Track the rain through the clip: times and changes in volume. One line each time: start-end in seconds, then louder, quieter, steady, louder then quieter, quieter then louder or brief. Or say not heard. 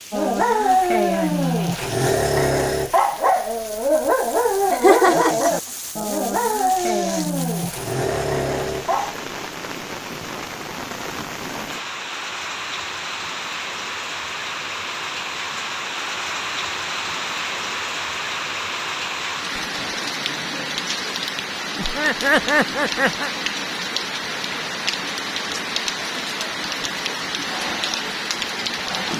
0.0-29.1 louder.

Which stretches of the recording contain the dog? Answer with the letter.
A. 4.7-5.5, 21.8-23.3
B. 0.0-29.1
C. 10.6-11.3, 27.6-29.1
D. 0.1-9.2
D.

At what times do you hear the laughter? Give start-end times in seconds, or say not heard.
4.7-5.5, 21.8-23.3.